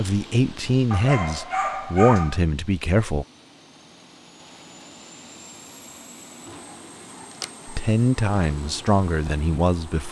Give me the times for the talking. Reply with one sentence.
The talking can be heard from 0.0 to 3.2 s and from 7.7 to 10.0 s.